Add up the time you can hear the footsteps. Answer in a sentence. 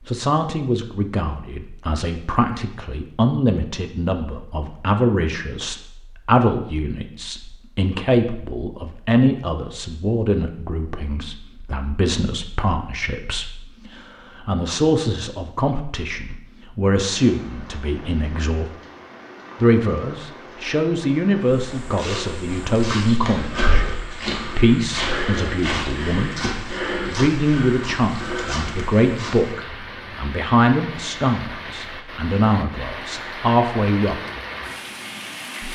You can hear the footsteps for 8 seconds altogether.